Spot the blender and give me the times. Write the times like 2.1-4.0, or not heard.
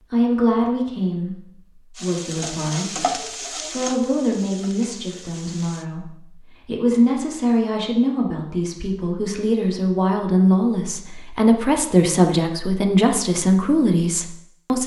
not heard.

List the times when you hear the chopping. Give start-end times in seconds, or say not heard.
not heard.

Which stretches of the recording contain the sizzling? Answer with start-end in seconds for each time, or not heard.
1.9-5.8.